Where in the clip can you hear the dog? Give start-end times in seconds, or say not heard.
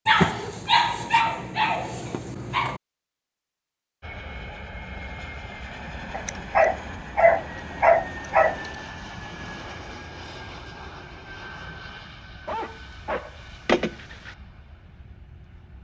0.1-2.8, 6.1-8.7, 12.4-14.3.